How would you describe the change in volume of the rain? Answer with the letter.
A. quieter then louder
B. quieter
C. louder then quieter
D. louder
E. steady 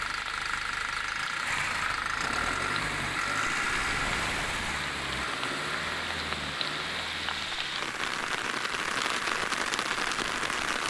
D.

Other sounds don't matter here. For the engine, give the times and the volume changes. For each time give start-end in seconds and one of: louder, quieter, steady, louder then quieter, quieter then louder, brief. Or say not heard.
0.0-10.6 quieter.